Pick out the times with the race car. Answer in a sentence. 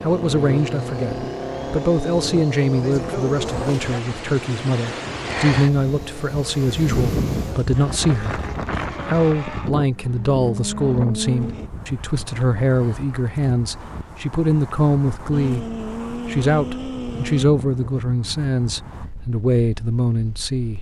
You can hear the race car from 0.0 to 11.7 s and from 15.3 to 17.4 s.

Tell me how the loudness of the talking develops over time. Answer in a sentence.
The loudness of the talking stays about the same.